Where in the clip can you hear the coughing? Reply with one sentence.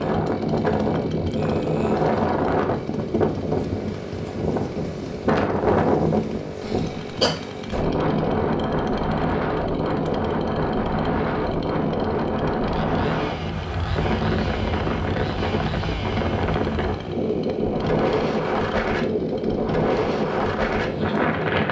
The coughing can be heard from 6.6 to 7.3 s.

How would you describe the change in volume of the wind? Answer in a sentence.
The volume of the wind stays about the same.